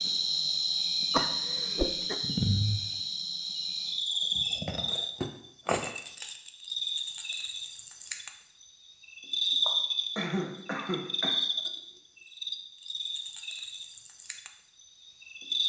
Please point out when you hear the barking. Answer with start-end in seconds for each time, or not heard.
not heard.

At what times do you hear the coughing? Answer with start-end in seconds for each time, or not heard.
1.1-2.1, 10.2-11.3.